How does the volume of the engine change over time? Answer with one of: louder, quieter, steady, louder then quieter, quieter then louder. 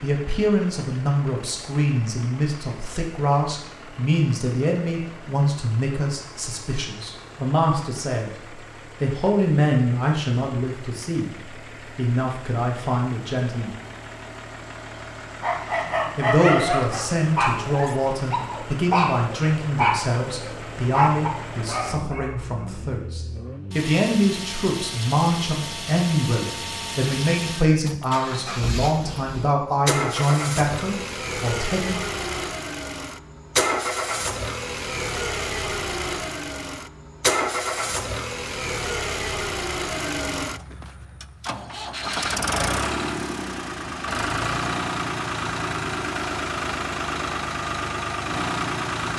louder.